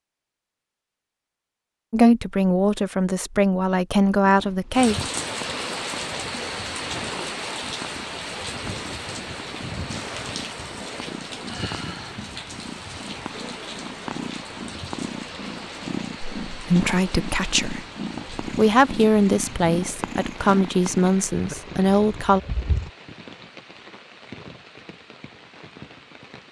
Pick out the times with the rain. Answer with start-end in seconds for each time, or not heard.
4.7-26.4.